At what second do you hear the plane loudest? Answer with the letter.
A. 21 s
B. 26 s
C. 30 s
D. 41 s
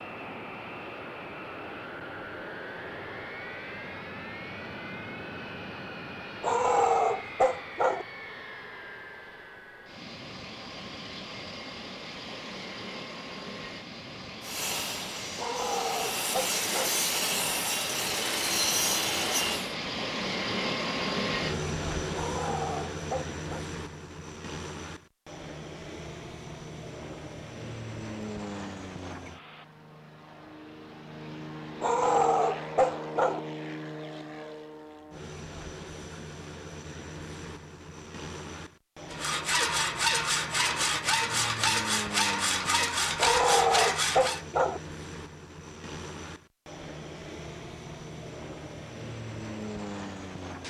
A.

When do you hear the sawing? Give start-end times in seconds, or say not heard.
14.4-19.8, 39.1-44.5.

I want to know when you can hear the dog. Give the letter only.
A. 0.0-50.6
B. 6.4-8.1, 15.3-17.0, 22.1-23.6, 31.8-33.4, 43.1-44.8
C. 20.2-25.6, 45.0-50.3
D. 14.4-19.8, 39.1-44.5
B.